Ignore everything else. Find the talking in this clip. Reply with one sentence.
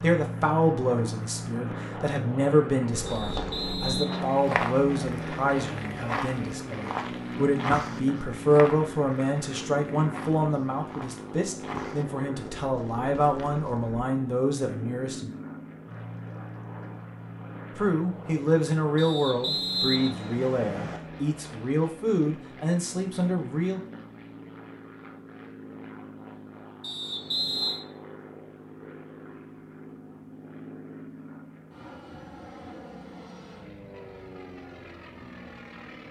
You can hear the talking from 0.0 to 15.3 s and from 17.8 to 23.8 s.